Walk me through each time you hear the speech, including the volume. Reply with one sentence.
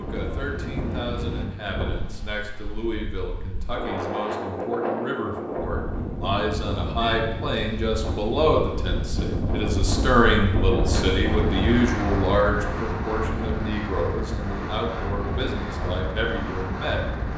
The speech can be heard from 0.0 to 17.3 s, getting louder then quieter.